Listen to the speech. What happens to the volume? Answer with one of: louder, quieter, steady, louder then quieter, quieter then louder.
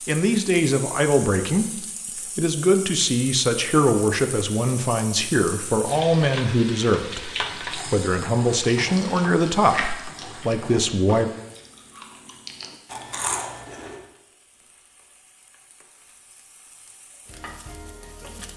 steady.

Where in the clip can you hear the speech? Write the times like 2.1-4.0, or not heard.
0.1-11.3.